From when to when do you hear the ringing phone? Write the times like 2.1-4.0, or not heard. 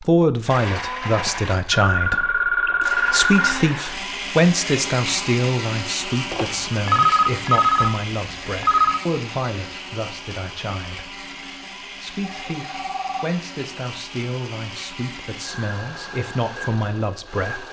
1.1-3.8, 6.3-9.0, 12.3-13.4.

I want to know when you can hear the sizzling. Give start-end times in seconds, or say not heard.
not heard.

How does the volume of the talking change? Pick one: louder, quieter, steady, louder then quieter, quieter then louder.
quieter.